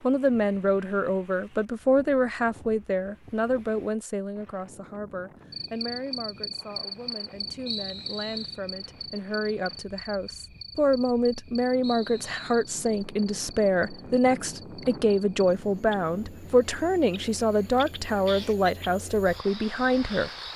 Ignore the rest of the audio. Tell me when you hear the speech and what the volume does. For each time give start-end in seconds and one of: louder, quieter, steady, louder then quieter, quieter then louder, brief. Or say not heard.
0.0-20.3 quieter then louder.